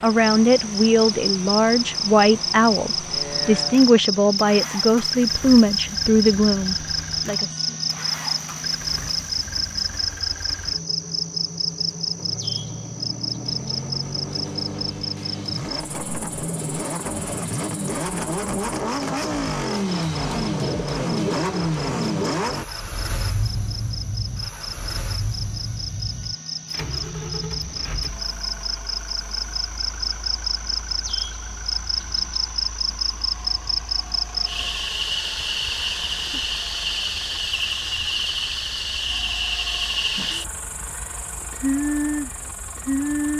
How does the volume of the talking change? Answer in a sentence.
The volume of the talking stays about the same.